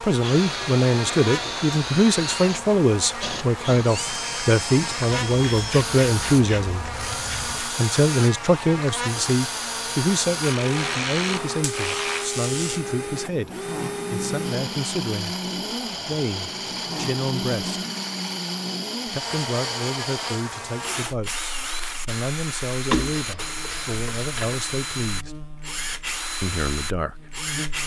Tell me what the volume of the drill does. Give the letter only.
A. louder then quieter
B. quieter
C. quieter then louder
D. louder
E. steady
E.